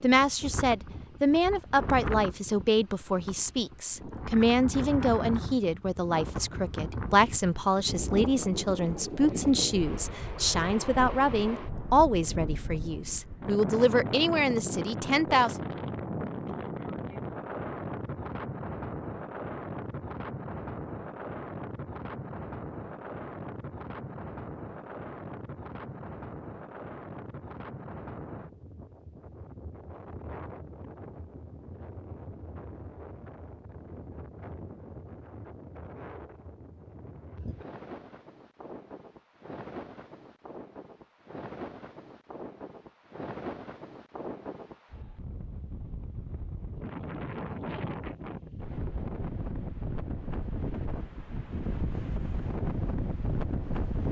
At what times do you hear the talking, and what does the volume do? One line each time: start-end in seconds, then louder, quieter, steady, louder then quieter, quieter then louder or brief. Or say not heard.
0.0-15.6 steady.